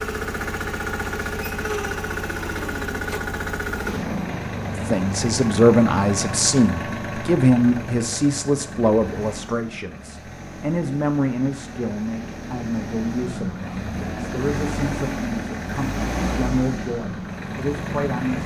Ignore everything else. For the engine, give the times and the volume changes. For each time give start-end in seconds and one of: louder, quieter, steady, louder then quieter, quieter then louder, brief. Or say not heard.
0.0-18.4 quieter then louder.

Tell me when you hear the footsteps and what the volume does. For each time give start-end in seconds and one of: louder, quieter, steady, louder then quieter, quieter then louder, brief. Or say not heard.
not heard.